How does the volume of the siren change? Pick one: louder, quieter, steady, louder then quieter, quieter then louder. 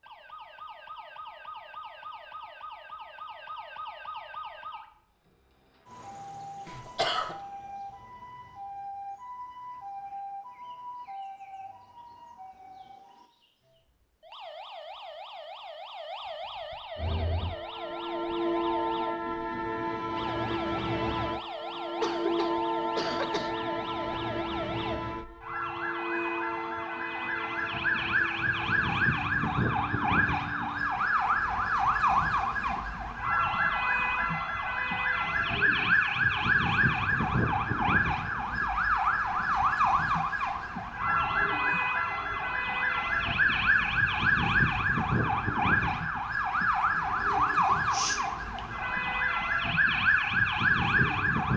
louder.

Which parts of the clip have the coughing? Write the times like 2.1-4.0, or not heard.
6.7-7.3, 22.0-23.6, 47.7-48.9.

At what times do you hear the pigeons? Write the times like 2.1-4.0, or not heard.
not heard.